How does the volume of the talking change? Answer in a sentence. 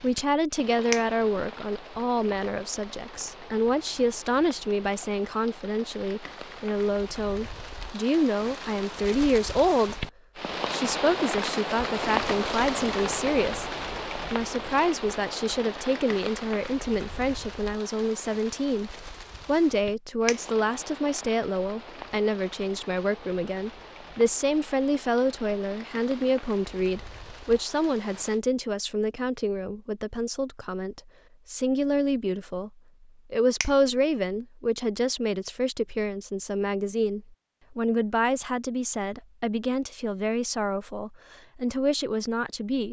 The volume of the talking stays about the same.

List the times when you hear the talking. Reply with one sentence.
The talking can be heard from 0.0 to 10.1 s, from 10.7 to 13.7 s, from 14.3 to 32.7 s and from 33.3 to 42.8 s.